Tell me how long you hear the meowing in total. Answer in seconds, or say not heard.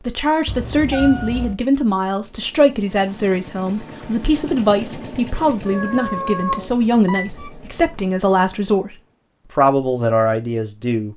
3 s.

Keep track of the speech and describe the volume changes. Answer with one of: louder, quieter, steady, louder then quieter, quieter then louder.
steady.